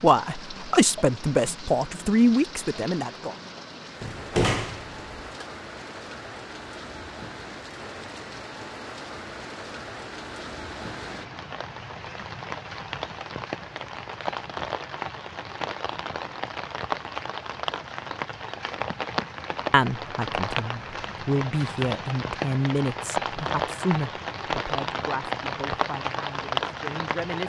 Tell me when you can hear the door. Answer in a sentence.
You can hear the door from 4.0 to 5.5 s.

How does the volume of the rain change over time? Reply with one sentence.
The loudness of the rain goes up.